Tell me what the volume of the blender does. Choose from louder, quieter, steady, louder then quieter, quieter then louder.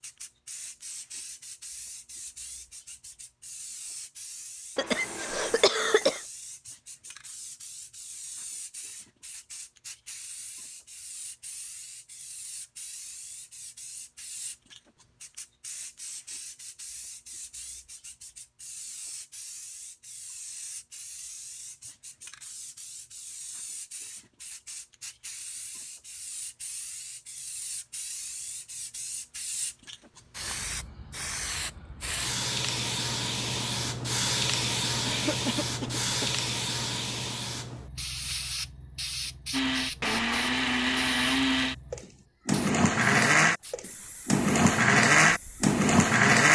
louder.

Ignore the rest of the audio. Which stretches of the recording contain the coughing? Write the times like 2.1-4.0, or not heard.
4.8-6.2, 35.0-36.4.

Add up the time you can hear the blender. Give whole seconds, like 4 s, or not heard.
7 s.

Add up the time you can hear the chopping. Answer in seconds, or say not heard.
not heard.